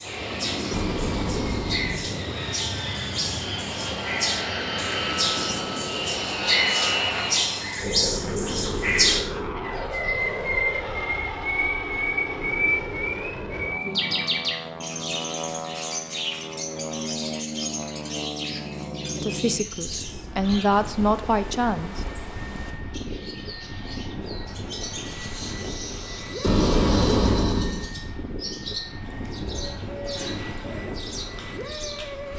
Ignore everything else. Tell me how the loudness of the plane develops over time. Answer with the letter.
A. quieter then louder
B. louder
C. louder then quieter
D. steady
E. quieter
E.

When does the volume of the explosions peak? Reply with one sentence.
The volume of the explosions peaks at 27 seconds.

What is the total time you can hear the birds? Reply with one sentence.
The birds can be heard for 32 seconds in total.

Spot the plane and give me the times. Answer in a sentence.
The plane can be heard from 0.0 to 32.3 s.